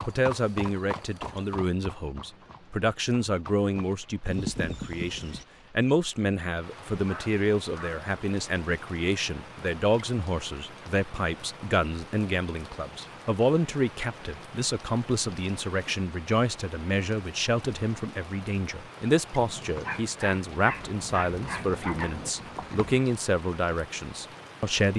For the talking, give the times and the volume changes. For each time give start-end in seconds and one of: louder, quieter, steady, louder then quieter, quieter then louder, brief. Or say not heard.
0.1-24.9 steady.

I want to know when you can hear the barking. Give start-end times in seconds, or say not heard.
6.9-8.1, 19.9-22.1.